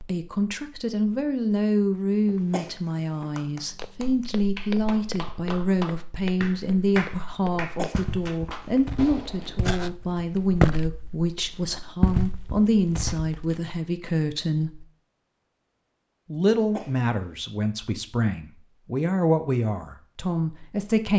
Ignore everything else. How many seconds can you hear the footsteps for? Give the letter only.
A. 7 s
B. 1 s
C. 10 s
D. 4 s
C.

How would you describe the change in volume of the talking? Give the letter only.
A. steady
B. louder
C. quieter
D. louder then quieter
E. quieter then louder
A.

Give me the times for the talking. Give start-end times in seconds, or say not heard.
0.0-14.8, 16.3-21.1.